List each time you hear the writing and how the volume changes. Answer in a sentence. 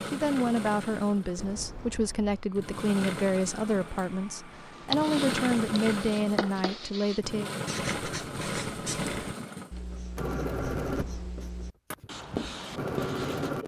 The writing can be heard from 4.5 to 13.6 s, getting quieter then louder.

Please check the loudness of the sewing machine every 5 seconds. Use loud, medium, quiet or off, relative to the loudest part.
medium, loud, loud.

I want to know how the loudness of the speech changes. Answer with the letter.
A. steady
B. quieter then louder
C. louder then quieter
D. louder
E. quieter
A.